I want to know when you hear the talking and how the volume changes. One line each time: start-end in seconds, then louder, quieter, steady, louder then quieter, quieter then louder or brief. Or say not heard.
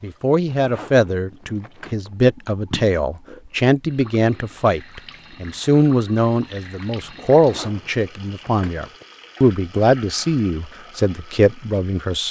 0.0-12.2 steady.